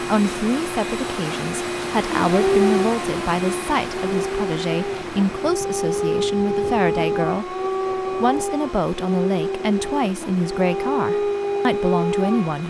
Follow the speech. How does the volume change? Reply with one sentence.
The loudness of the speech stays about the same.